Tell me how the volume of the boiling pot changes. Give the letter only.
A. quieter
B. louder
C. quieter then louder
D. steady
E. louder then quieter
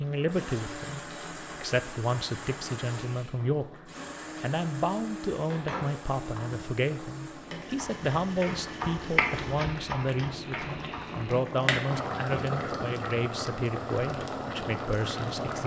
B.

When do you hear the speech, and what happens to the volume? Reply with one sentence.
The speech can be heard from 0.0 to 15.6 s, at a steady volume.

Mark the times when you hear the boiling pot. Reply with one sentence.
The boiling pot can be heard from 0.0 to 15.6 s.